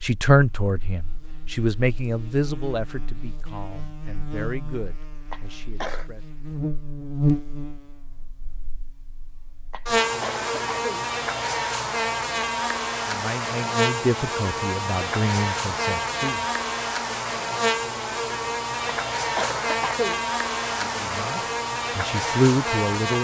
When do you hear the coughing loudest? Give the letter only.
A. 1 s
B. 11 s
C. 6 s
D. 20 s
D.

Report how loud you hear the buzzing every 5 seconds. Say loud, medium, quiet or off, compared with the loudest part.
quiet, loud, loud, loud, loud.